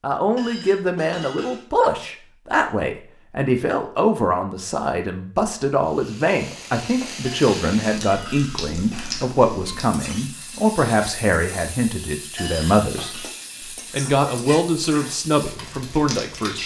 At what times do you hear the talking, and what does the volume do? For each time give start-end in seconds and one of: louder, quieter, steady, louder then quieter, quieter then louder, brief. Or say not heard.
0.0-16.6 steady.